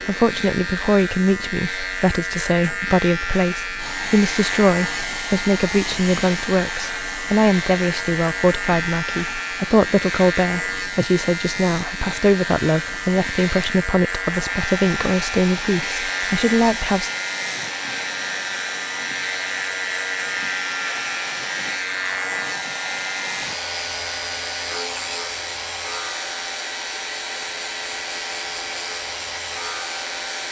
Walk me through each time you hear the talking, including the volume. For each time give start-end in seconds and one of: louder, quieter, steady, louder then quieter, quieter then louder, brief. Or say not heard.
0.1-17.1 steady.